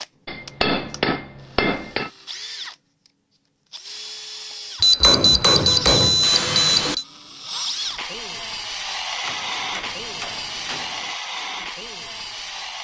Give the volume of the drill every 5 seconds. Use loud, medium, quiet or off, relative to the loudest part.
medium, loud, loud.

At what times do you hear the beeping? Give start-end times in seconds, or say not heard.
4.8-7.0.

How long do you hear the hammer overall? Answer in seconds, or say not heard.
6 s.